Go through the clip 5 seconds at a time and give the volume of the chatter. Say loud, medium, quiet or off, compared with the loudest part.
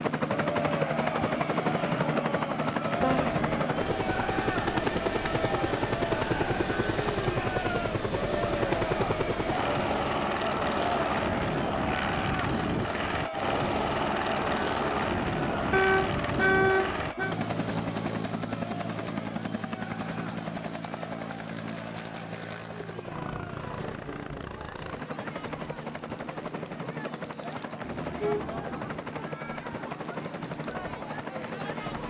loud, loud, loud, medium, quiet, medium, medium.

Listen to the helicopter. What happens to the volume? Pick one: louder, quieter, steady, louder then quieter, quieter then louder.
quieter.